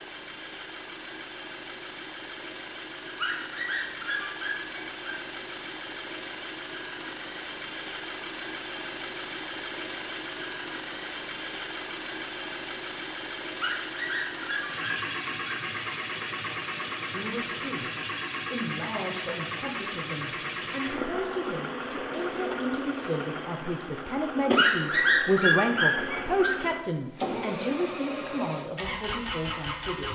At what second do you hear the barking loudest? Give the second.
25 s.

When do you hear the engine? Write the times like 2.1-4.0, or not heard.
0.0-30.1.